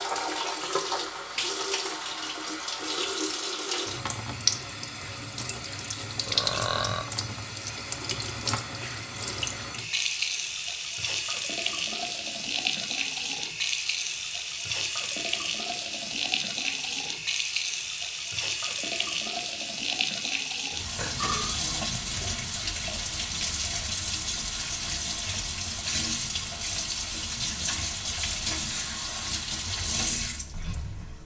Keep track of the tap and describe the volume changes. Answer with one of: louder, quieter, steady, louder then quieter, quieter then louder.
steady.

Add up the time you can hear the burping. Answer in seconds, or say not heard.
2 s.